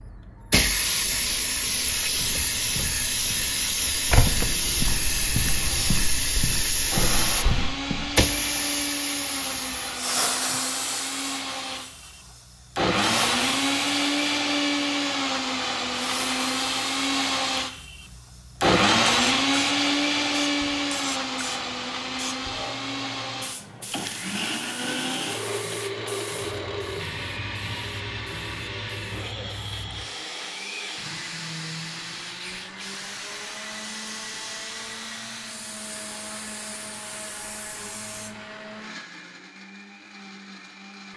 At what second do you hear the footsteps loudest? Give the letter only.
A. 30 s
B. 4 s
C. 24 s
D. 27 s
B.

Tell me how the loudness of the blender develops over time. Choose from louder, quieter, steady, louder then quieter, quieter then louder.
louder then quieter.